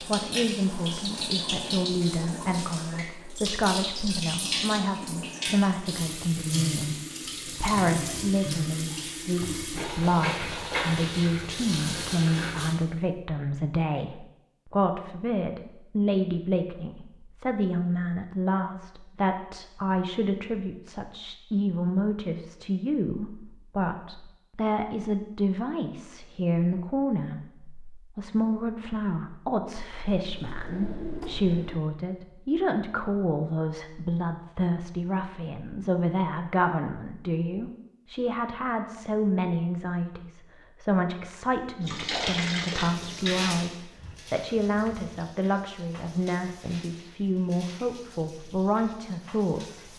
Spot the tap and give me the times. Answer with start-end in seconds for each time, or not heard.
0.0-12.8, 41.8-49.9.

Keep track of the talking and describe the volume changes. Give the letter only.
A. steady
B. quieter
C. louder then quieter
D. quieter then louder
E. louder
A.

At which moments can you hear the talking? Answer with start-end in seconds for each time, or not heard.
0.0-49.9.